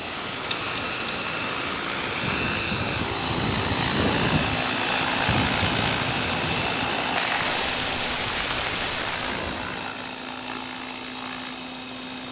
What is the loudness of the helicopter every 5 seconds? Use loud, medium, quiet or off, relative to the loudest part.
loud, loud, medium.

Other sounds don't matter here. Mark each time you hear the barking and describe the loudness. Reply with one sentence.
The barking can't be heard in this clip.